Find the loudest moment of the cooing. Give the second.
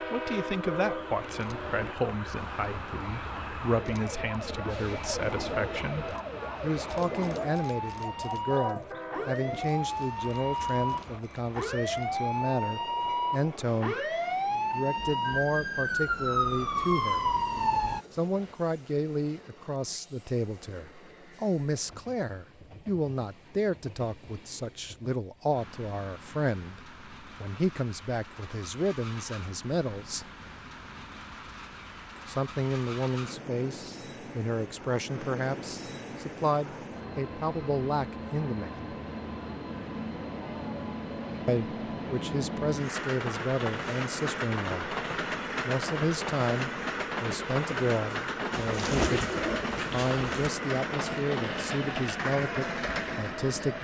49 s.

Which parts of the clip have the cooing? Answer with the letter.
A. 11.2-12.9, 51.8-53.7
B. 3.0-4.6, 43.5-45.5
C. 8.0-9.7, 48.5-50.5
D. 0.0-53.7
C.